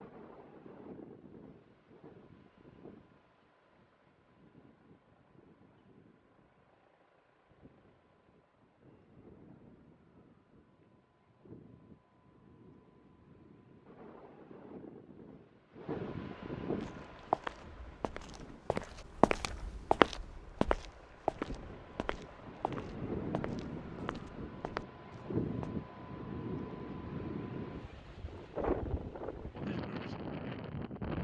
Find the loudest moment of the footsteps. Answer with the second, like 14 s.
20 s.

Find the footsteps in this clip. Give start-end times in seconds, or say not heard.
16.8-25.7.